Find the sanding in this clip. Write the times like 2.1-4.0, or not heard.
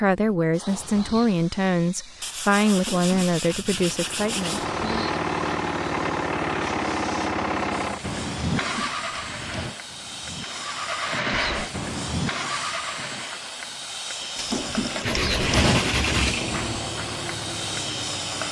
2.2-4.7, 15.0-16.8.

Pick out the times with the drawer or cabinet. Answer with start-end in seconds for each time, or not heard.
2.7-4.0, 8.6-9.8, 14.3-15.8.